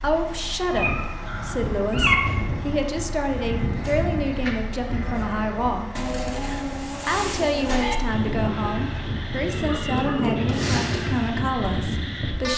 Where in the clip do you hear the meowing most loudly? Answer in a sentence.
The loudest moment of the meowing is at 2 seconds.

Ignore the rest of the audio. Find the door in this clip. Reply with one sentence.
The door can't be heard in this clip.